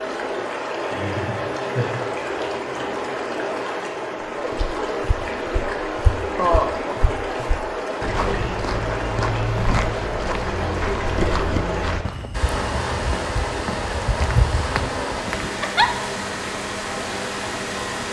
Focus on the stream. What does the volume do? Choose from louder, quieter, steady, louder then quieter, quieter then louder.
steady.